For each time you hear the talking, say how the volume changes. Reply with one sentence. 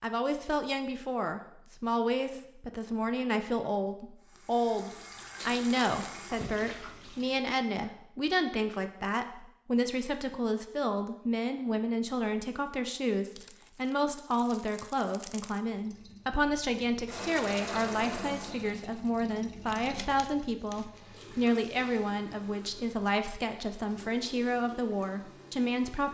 The talking can be heard from 0.0 to 26.0 s, at a steady volume.